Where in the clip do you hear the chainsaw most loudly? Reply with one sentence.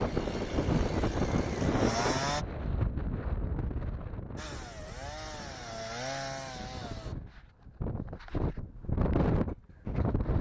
The loudest moment of the chainsaw is at 2 seconds.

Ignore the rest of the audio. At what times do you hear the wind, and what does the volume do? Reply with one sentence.
The wind can be heard from 0.0 to 10.3 s, getting quieter then louder.